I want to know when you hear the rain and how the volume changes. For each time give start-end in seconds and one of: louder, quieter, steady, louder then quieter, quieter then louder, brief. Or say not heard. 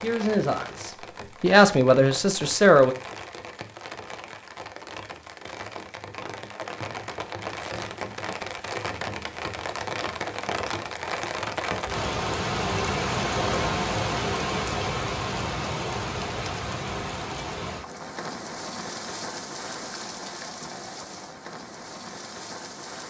0.0-23.0 louder then quieter.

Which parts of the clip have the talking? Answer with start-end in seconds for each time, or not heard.
0.0-3.0.